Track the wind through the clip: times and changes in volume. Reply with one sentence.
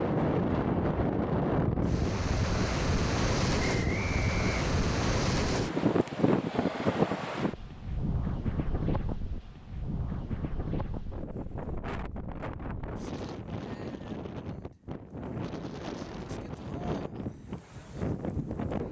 The wind can be heard from 0.0 to 18.8 s, getting quieter.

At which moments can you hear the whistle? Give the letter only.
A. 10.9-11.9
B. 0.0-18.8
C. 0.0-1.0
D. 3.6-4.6
D.